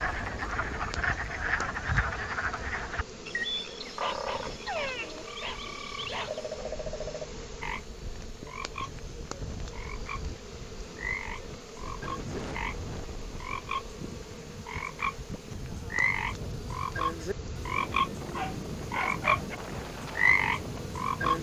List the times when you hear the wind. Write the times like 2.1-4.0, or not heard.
0.0-21.3.